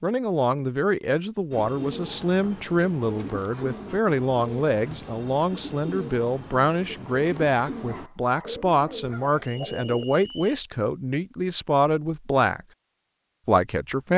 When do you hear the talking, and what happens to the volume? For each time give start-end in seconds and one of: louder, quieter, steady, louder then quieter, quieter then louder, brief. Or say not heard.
0.0-12.6 steady
13.4-14.1 brief.